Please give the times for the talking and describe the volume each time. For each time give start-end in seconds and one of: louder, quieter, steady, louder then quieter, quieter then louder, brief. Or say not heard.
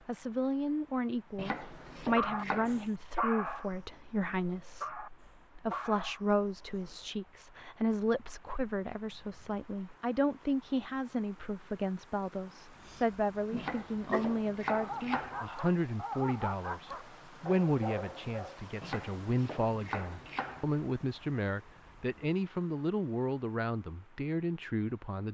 0.1-25.2 steady.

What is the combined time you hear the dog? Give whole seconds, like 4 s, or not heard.
11 s.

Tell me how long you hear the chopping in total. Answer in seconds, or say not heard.
5 s.